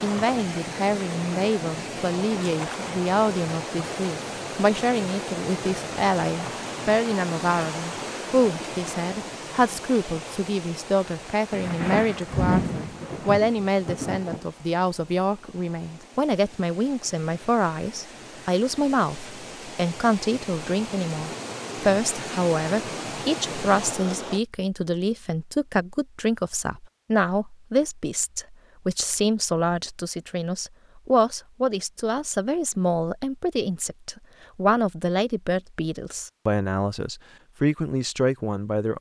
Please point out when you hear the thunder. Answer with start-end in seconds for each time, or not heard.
11.5-14.4.